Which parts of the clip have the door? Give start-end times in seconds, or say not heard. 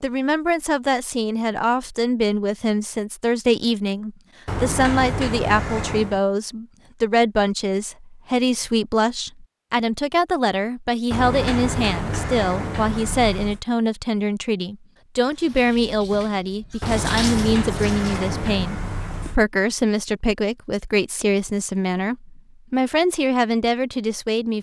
4.5-6.2, 11.1-13.6, 16.8-19.4.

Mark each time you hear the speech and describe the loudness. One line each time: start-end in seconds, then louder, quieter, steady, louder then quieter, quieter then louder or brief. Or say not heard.
0.0-24.5 steady.